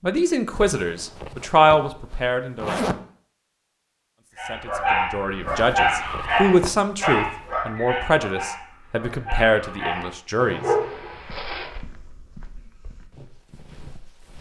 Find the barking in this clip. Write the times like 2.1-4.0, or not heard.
4.3-11.1.